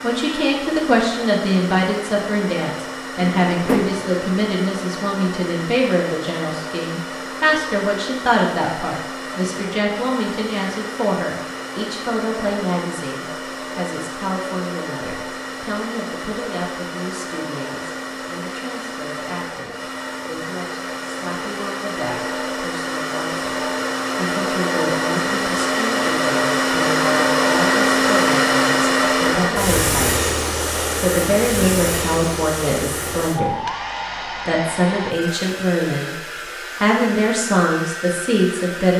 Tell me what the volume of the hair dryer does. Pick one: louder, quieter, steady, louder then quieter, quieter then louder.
louder then quieter.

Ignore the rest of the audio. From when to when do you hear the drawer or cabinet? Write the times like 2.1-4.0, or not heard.
3.1-4.0.